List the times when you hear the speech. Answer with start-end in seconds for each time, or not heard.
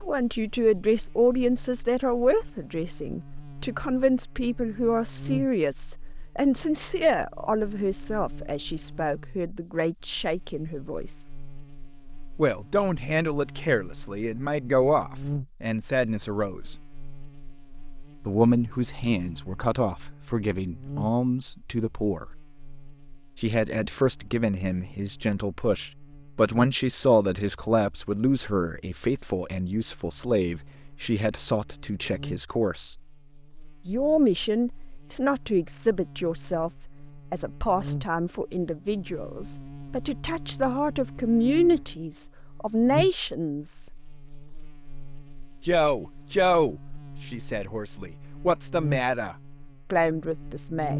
0.0-11.2, 12.3-16.8, 18.2-22.2, 23.4-33.0, 33.9-43.9, 45.6-50.9.